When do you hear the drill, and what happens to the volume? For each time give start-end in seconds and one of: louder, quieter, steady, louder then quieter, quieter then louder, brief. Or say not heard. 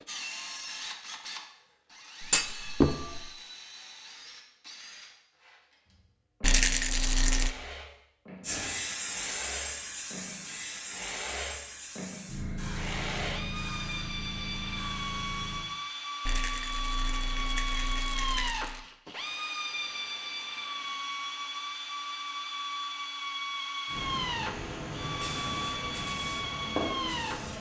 0.0-27.5 louder.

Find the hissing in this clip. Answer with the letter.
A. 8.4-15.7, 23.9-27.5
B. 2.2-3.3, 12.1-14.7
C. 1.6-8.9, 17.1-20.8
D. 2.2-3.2
A.